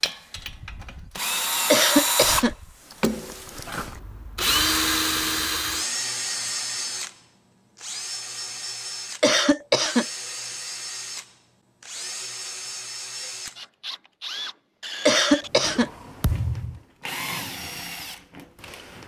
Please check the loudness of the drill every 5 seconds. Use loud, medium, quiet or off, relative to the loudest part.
loud, loud, medium, medium.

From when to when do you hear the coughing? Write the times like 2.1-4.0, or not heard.
1.7-2.5, 9.2-10.1, 15.1-15.9.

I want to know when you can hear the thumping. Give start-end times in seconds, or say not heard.
16.2-16.8.